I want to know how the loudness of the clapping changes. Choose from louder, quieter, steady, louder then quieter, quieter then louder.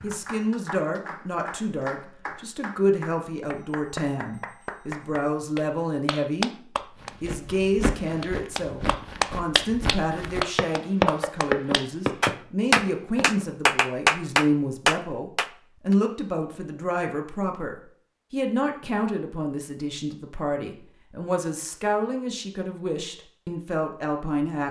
louder.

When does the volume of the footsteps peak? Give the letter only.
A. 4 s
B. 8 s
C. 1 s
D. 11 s
D.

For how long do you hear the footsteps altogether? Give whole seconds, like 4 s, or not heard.
7 s.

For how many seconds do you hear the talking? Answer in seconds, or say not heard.
24 s.